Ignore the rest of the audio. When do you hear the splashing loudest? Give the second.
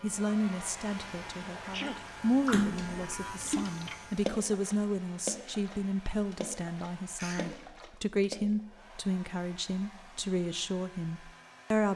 3 s.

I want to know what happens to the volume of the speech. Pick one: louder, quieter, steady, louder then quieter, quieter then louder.
steady.